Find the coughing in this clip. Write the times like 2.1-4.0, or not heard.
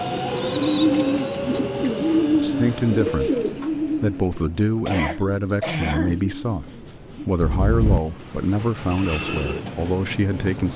4.8-6.2.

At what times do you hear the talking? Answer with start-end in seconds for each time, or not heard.
2.4-10.7.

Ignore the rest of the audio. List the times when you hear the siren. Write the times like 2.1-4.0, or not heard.
not heard.